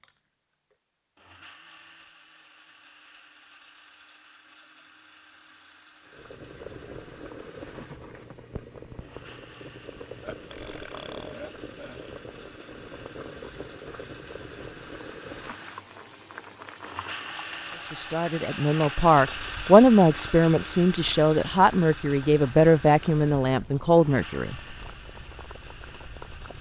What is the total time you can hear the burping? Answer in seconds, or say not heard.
2 s.